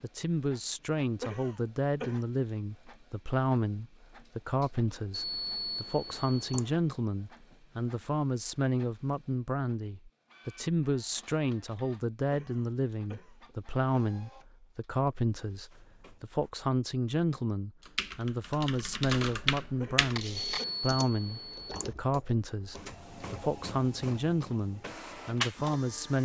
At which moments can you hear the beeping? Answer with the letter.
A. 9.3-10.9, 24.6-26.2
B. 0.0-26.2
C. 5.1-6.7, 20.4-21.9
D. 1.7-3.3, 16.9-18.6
C.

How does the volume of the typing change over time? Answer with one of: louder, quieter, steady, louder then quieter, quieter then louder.
louder then quieter.